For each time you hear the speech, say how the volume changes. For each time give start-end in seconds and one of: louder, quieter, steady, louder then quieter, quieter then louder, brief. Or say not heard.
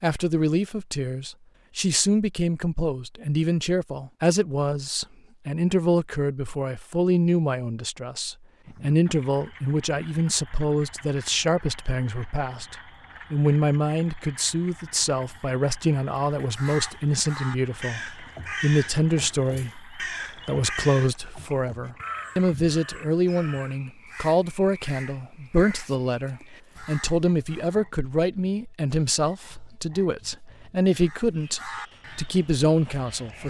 0.0-33.4 steady.